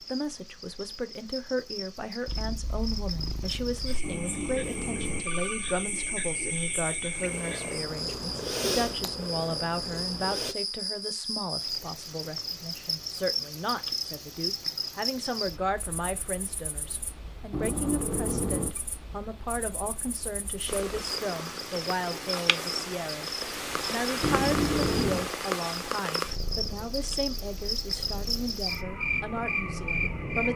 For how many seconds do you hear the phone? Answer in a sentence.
The phone can be heard for 4 seconds in total.